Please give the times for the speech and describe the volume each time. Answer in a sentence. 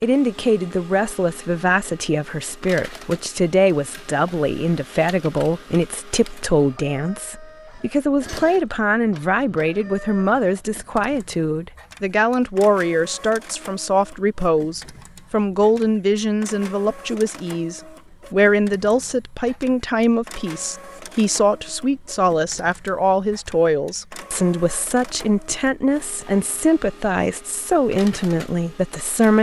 You can hear the speech from 0.0 to 29.3 s, at a steady volume.